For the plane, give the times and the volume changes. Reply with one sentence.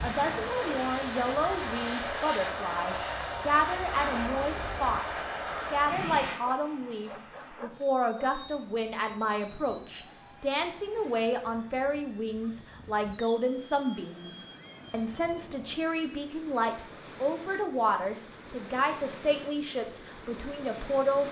The plane can be heard from 0.0 to 15.2 s, getting quieter.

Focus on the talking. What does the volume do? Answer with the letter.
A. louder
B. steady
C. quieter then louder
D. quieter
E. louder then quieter
B.